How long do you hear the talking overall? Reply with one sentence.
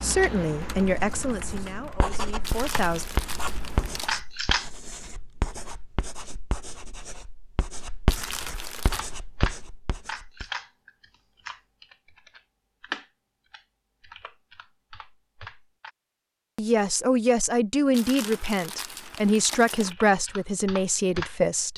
You can hear the talking for 8 seconds altogether.